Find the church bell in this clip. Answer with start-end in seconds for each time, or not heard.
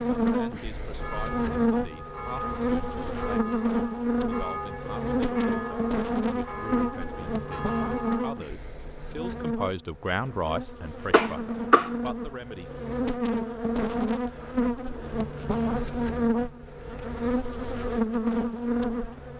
0.9-8.4.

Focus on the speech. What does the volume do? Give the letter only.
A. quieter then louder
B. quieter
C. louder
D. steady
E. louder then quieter
C.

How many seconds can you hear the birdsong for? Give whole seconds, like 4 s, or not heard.
not heard.